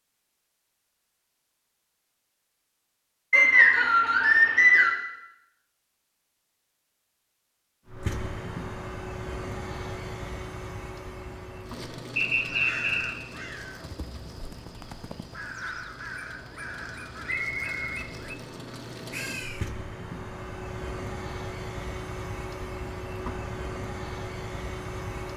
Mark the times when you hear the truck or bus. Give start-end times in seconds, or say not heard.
7.8-25.3.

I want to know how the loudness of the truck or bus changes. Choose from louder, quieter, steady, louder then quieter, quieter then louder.
quieter then louder.